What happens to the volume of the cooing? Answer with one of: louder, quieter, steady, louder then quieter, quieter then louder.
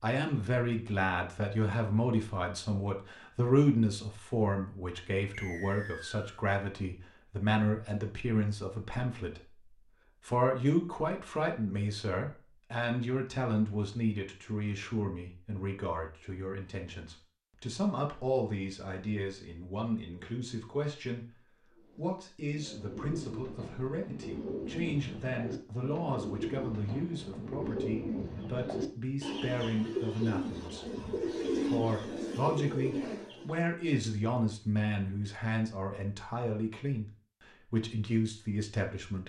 louder.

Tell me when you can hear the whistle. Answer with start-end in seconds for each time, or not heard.
5.3-6.5.